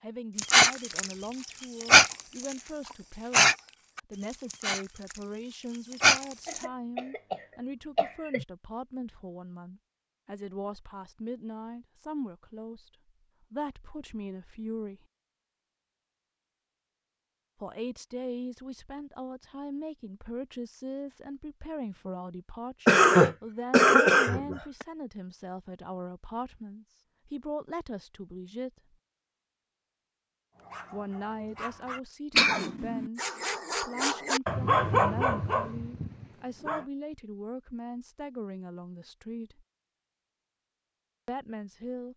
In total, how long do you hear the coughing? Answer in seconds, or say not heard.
5 s.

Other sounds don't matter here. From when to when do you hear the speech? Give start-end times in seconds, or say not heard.
0.0-15.1, 17.6-28.7, 30.9-39.6, 41.2-42.1.